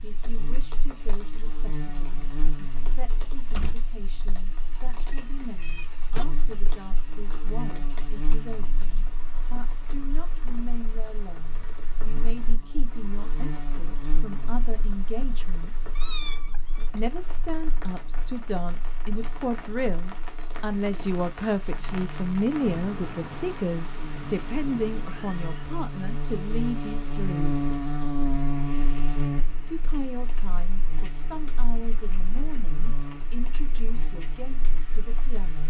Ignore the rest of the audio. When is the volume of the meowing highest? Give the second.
16 s.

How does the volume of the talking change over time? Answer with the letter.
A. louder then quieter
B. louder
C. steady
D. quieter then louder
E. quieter
A.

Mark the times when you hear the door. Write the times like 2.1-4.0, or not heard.
3.1-3.8.